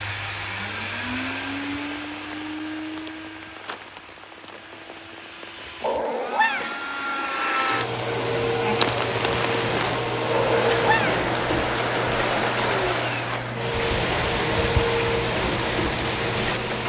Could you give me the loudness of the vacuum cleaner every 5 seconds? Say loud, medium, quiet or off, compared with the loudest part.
medium, loud, loud, loud.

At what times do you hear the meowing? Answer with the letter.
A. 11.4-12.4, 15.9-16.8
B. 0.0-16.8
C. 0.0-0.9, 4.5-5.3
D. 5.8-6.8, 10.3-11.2
D.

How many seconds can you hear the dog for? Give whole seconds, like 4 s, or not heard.
not heard.